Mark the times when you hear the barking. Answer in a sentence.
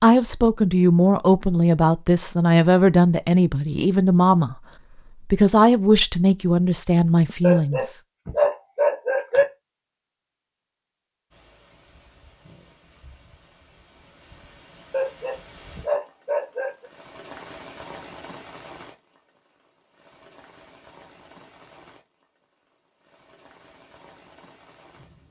The barking can be heard from 7.4 to 9.4 s and from 14.9 to 16.9 s.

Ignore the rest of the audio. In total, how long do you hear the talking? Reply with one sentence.
You can hear the talking for 7 seconds altogether.